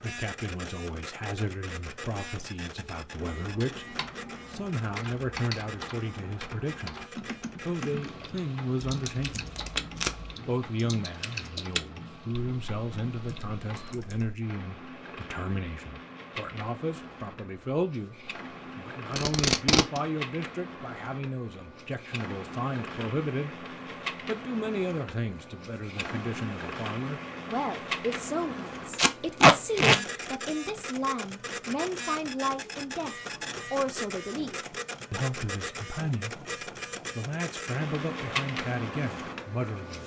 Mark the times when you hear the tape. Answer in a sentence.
You can hear the tape from 8.8 to 10.3 s, from 19.1 to 20.0 s and from 28.9 to 30.0 s.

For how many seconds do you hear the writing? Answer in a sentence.
The writing can't be heard in this clip.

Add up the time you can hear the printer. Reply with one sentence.
You can hear the printer for 40 seconds altogether.